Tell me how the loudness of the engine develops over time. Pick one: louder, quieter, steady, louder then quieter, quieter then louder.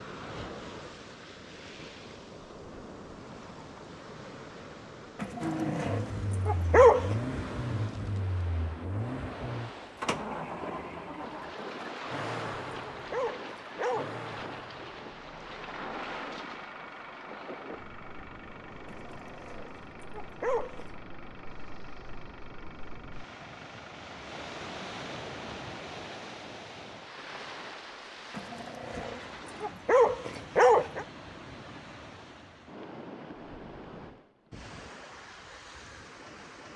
quieter.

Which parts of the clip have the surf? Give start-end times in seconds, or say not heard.
0.0-36.7.